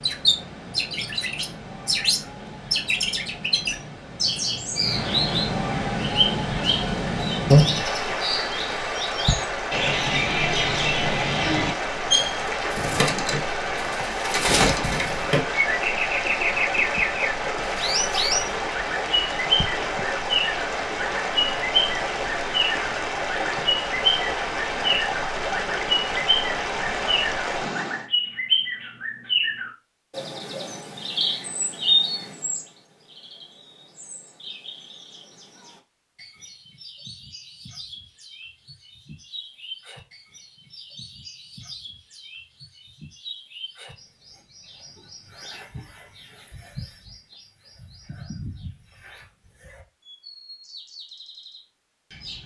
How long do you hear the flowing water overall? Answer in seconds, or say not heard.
28 s.